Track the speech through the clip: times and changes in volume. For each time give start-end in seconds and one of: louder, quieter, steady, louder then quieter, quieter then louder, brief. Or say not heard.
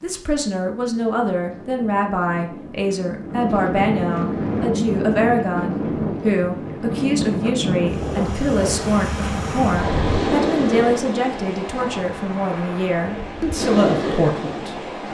0.0-14.8 steady.